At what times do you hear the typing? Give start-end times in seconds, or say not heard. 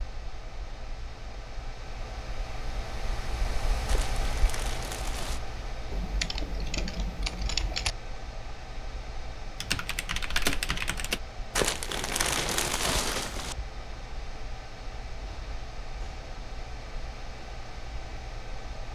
5.9-8.0, 9.6-11.2.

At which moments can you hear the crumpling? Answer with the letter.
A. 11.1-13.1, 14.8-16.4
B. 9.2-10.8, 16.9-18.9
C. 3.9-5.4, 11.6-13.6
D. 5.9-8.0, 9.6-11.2
C.